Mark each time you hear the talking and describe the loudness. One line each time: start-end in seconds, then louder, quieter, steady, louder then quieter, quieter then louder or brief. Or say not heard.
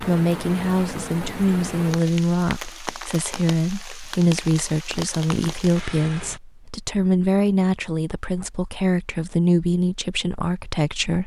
0.0-11.2 steady.